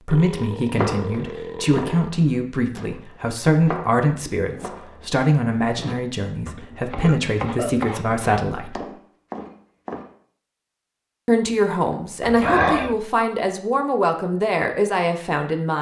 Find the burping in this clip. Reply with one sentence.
The burping can be heard from 0.1 to 2.1 s, from 6.5 to 7.9 s and from 12.2 to 12.9 s.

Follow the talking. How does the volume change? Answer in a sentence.
The volume of the talking stays about the same.